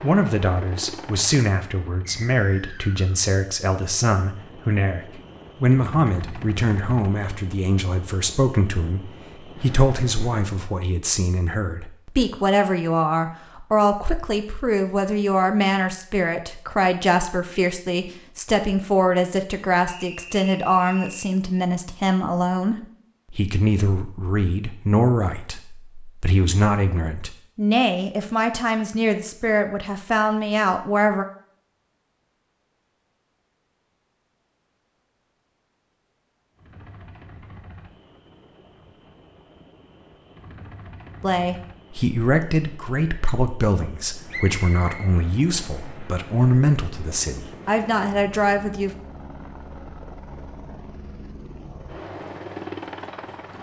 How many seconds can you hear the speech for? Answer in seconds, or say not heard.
39 s.